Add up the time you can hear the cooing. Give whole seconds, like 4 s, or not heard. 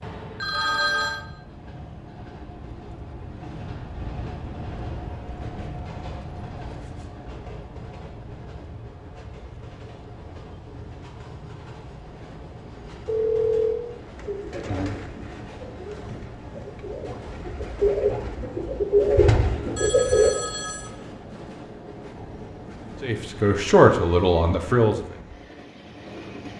6 s.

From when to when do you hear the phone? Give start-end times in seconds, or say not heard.
0.0-1.2, 13.1-13.8, 19.8-20.9.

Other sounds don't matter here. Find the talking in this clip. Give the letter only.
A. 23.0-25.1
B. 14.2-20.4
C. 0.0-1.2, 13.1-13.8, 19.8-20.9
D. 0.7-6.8
A.